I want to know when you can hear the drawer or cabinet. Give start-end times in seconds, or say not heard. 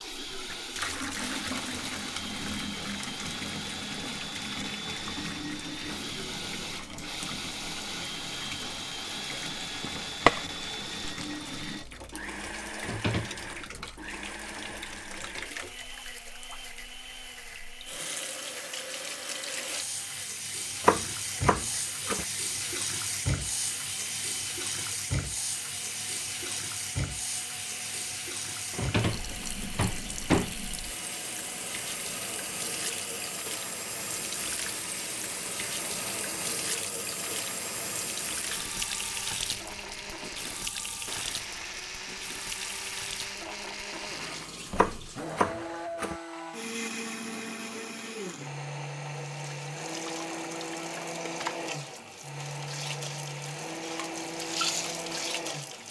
12.8-13.9, 28.7-30.6.